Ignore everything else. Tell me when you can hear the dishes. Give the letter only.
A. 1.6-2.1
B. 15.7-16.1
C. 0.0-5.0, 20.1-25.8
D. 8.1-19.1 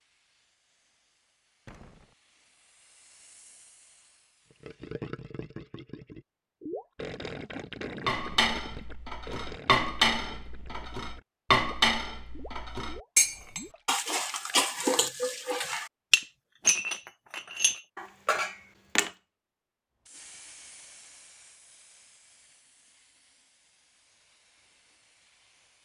D.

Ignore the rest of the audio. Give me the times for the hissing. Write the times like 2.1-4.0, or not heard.
0.0-5.0, 20.1-25.8.